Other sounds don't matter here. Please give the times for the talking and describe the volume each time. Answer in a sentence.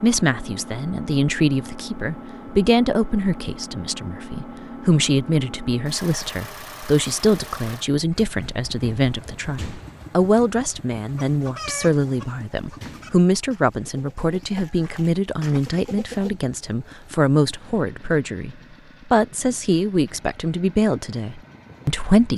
The talking can be heard from 0.0 to 22.3 s, at a steady volume.